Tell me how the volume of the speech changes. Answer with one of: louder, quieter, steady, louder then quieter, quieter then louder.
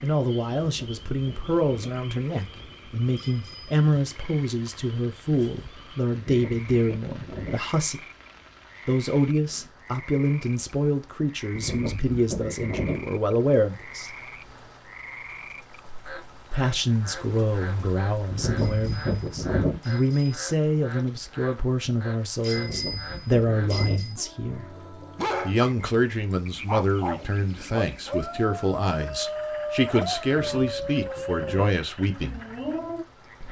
steady.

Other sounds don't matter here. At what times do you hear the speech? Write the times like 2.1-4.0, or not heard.
0.0-8.0, 8.8-14.2, 16.5-24.6, 25.4-32.4.